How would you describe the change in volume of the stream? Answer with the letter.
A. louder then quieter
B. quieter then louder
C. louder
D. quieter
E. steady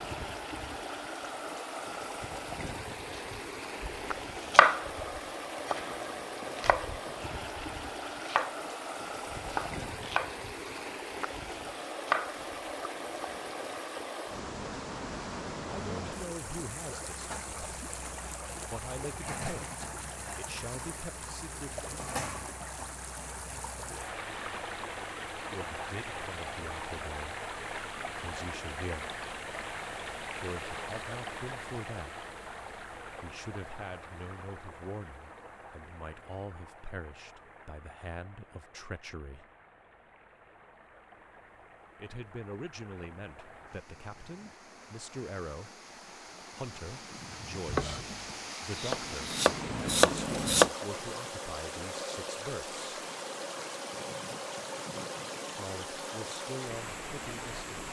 B.